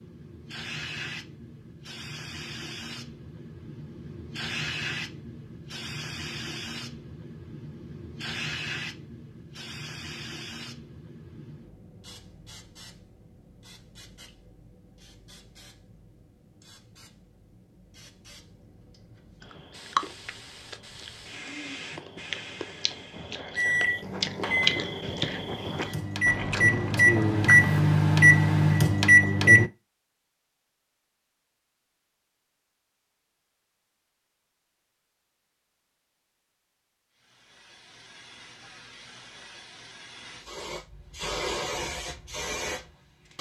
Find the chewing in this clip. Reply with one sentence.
You can hear the chewing from 19.4 to 27.8 s.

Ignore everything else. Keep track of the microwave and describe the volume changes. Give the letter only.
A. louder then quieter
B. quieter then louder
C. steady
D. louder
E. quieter
B.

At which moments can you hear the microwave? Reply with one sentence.
You can hear the microwave from 23.6 to 29.7 s.